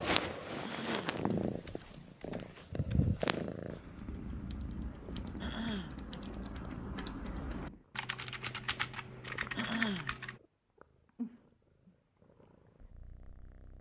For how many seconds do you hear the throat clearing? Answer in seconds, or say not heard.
2 s.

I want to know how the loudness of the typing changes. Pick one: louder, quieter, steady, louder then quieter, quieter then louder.
louder.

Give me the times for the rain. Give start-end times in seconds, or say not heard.
not heard.